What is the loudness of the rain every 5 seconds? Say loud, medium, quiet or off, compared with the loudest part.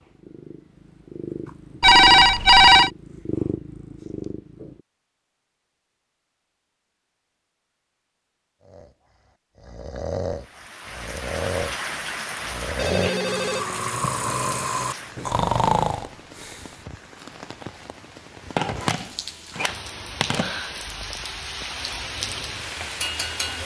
off, off, loud, medium, loud.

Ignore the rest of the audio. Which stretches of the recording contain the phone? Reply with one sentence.
The phone can be heard from 1.8 to 2.9 s, from 12.8 to 14.1 s and from 18.6 to 20.6 s.